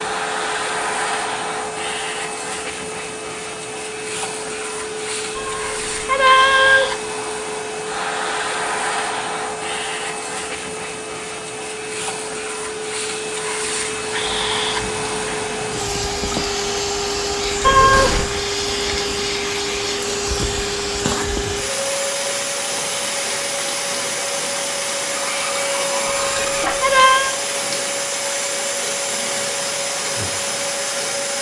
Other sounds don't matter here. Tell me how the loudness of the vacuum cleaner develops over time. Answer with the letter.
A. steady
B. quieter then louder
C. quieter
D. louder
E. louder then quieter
A.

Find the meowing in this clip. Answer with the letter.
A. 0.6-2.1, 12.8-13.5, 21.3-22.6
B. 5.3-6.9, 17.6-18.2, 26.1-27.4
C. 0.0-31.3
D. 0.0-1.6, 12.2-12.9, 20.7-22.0
B.